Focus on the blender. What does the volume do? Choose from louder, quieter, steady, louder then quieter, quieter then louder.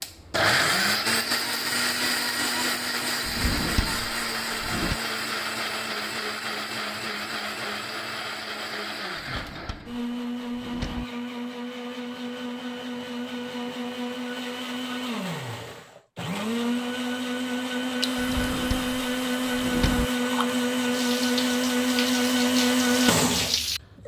quieter then louder.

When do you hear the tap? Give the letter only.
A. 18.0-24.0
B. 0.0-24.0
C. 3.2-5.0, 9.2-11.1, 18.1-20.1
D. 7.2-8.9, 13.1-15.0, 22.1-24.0
A.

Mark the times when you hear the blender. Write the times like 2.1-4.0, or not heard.
0.0-24.0.